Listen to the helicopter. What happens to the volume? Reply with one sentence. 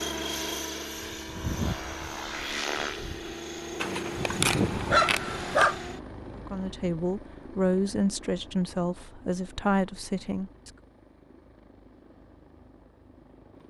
The loudness of the helicopter goes down.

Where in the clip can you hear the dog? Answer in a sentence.
The dog can be heard from 3.8 to 5.8 s.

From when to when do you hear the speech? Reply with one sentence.
You can hear the speech from 6.3 to 10.7 s.